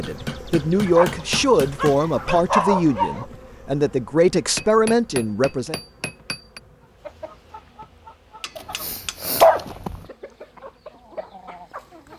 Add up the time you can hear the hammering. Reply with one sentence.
The hammering can be heard for 6 seconds in total.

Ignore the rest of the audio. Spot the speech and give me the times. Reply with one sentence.
The speech can be heard from 0.0 to 5.8 s.